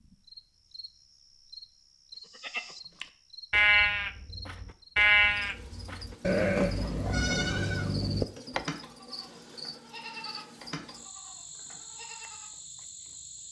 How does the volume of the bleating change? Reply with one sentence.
The volume of the bleating goes down.